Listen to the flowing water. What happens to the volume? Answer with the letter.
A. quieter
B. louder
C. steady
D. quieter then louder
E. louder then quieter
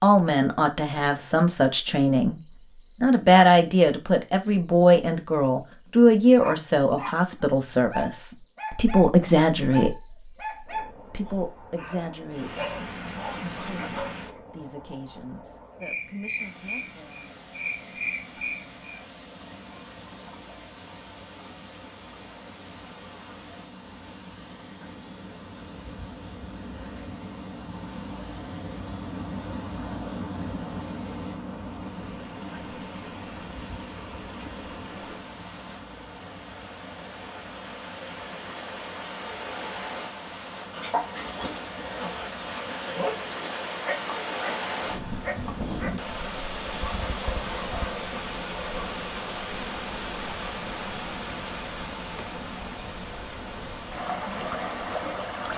B.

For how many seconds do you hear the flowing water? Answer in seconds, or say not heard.
39 s.